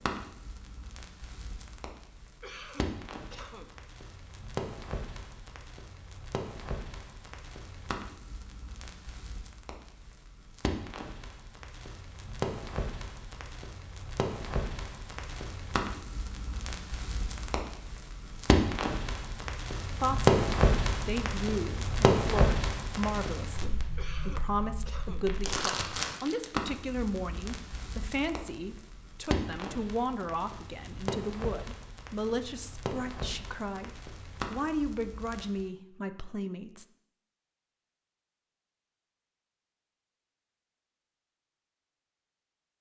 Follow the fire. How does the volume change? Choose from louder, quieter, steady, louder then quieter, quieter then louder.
louder then quieter.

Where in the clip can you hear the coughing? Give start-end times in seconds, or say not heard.
2.4-3.7, 23.9-25.2.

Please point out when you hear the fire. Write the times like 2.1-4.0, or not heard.
0.0-35.6.